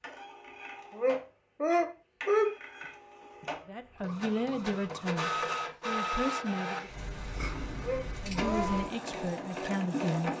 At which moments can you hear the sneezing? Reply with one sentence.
The sneezing can be heard from 0.9 to 2.5 s and from 7.8 to 8.7 s.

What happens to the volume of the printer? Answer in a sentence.
The loudness of the printer goes up.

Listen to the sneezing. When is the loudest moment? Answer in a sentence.
The loudest moment of the sneezing is at 2 seconds.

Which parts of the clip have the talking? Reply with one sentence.
You can hear the talking from 3.6 to 6.9 s and from 8.2 to 10.3 s.